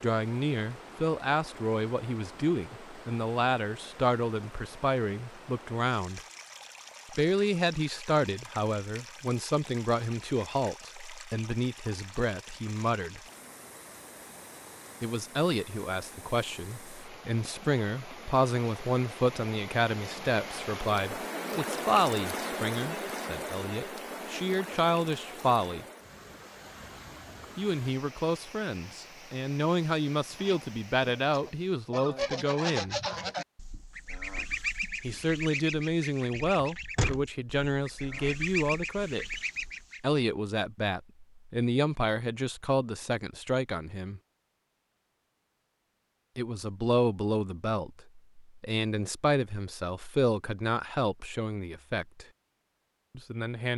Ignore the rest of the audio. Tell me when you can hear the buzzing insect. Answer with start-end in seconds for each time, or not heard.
not heard.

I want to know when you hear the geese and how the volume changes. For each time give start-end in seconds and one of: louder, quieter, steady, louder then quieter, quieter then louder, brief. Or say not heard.
30.4-40.0 steady.